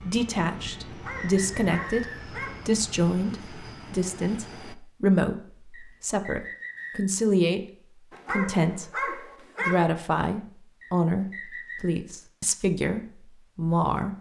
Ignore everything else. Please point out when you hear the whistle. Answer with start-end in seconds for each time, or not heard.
0.7-2.2, 5.7-7.0, 10.8-11.9.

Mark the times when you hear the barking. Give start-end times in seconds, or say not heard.
0.8-2.6, 8.1-9.9.